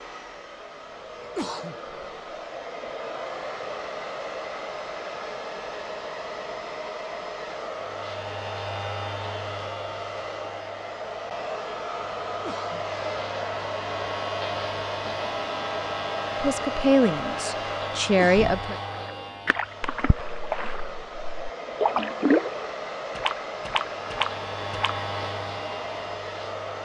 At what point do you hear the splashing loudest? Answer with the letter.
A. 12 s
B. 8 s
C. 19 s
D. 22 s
D.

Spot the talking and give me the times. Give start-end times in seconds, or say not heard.
16.4-18.8.